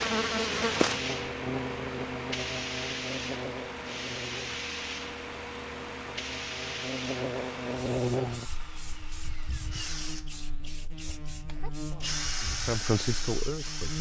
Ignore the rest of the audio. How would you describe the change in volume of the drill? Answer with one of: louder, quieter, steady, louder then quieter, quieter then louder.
louder.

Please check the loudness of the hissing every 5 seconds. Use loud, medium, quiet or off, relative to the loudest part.
loud, medium, quiet.